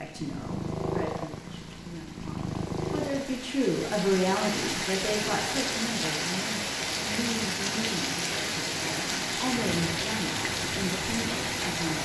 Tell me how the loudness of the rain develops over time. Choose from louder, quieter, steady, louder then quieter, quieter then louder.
louder.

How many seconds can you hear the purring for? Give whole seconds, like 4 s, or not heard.
3 s.